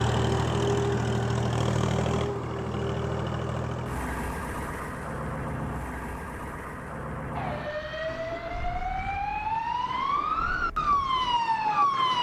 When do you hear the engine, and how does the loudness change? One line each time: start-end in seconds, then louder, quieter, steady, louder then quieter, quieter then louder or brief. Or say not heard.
0.0-12.1 quieter.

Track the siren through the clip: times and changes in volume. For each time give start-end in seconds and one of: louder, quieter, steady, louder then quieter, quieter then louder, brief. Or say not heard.
7.3-12.1 louder.